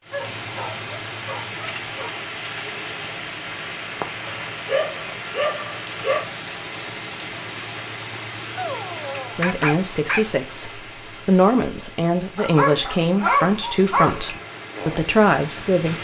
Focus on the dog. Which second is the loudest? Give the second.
13 s.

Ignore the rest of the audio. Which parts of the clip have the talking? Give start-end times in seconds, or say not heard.
9.3-15.9.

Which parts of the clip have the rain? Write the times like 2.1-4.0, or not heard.
0.0-15.9.